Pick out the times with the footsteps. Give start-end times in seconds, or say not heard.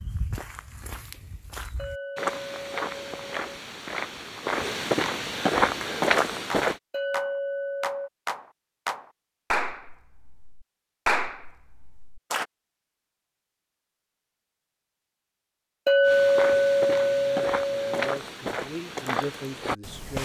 0.0-6.8, 16.1-20.1.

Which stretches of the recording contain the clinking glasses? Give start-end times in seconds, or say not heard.
1.8-3.4, 6.9-8.1, 15.8-18.2.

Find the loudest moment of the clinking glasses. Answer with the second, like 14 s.
16 s.